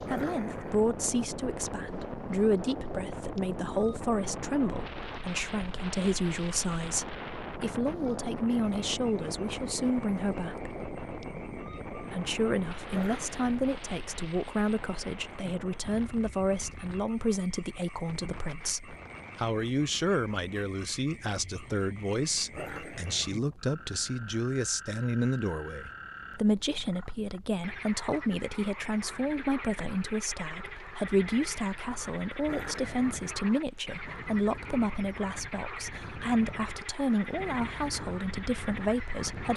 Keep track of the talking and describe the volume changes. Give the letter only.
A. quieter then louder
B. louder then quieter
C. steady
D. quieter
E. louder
C.